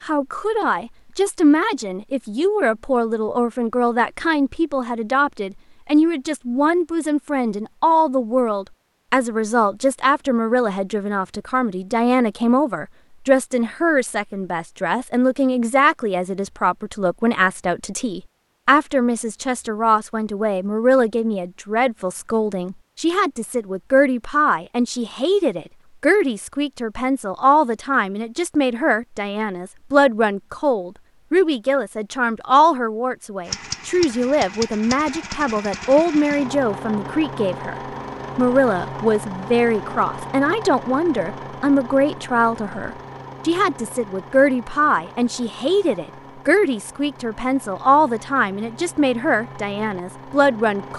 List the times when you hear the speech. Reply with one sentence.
The speech can be heard from 0.0 to 37.8 s and from 38.4 to 50.9 s.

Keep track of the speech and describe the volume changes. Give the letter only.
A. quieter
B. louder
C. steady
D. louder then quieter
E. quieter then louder
C.